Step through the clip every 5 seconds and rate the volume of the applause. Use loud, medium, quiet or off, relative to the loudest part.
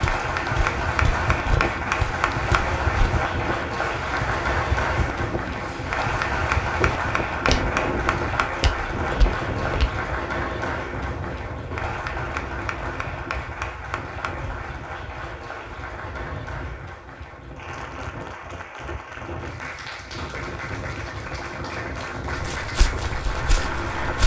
loud, loud, medium, medium, medium.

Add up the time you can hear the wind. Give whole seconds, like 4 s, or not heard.
24 s.